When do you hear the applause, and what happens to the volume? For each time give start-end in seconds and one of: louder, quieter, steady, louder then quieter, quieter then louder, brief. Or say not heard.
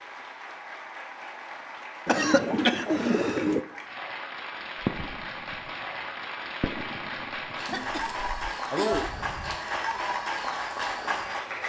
0.0-11.6 louder.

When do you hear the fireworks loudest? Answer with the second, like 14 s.
5 s.